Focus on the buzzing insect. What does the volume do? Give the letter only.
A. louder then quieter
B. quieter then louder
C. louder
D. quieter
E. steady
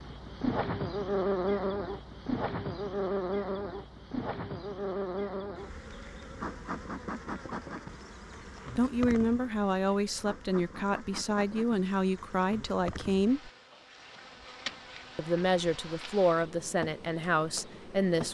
D.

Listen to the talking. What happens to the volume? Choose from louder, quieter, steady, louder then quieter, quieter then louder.
steady.